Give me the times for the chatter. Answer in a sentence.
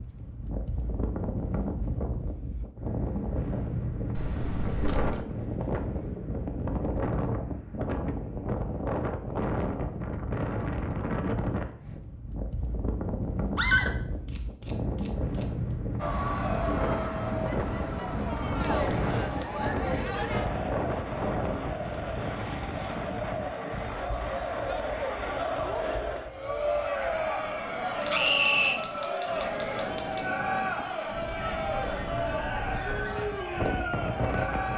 The chatter can be heard from 15.9 to 34.7 s.